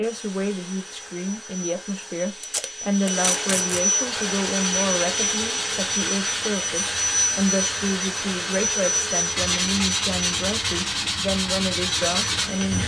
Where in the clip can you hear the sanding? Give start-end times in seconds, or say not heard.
4.0-12.8.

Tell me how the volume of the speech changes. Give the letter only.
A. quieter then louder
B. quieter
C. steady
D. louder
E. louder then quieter
C.